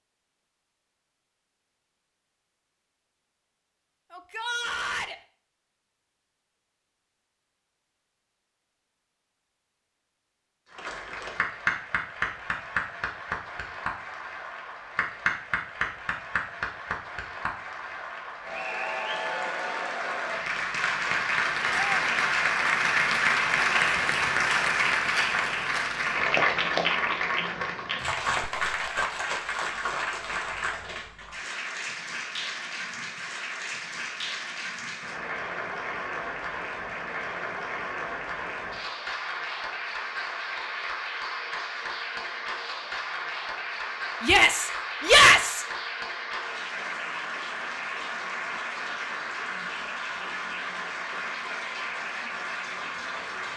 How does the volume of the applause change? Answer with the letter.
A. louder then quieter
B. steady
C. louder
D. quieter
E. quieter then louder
A.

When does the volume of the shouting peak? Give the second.
45 s.